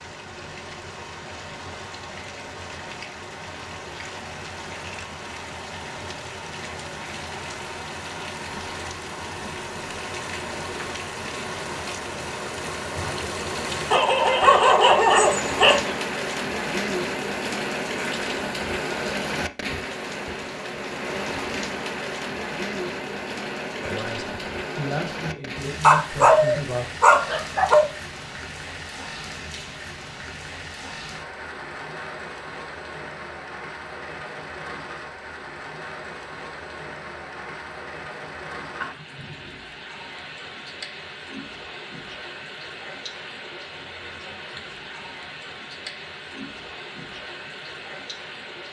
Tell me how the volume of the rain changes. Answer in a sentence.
The volume of the rain goes up, then down.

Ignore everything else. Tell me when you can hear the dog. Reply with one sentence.
You can hear the dog from 13.9 to 15.9 s and from 25.8 to 27.9 s.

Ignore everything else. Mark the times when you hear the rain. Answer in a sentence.
You can hear the rain from 0.0 to 48.6 s.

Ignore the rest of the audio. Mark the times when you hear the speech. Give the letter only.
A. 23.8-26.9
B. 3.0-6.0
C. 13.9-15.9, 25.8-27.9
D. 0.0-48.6
A.